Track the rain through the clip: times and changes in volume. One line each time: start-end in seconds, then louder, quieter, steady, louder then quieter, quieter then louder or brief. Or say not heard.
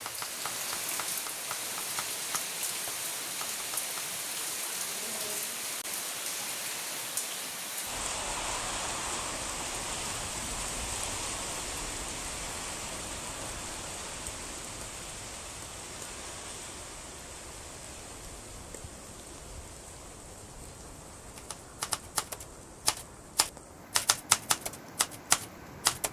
0.0-26.0 quieter.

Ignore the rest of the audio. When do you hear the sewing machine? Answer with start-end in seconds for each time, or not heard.
not heard.